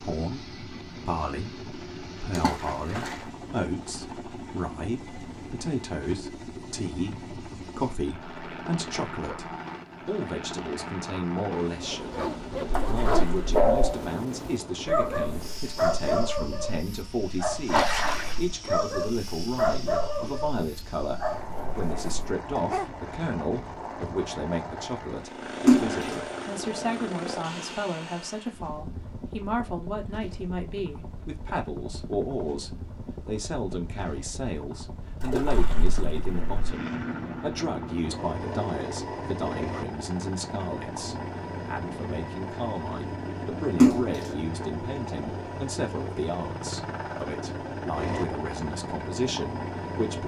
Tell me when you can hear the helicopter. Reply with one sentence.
You can hear the helicopter from 0.0 to 50.2 s.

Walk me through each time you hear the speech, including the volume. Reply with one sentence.
The speech can be heard from 0.0 to 50.2 s, at a steady volume.